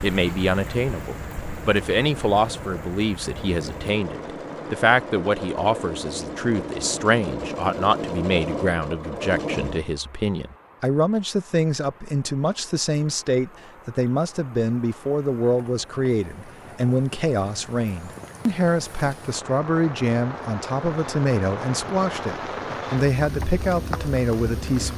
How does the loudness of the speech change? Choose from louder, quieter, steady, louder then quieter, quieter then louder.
steady.